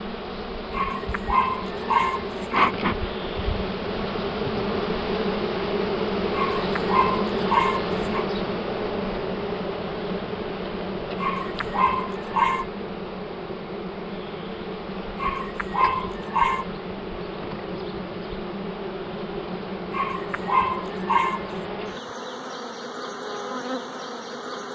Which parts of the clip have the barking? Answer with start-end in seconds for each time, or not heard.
0.7-2.8, 6.3-8.2, 11.2-12.7, 15.2-16.6, 19.9-21.5.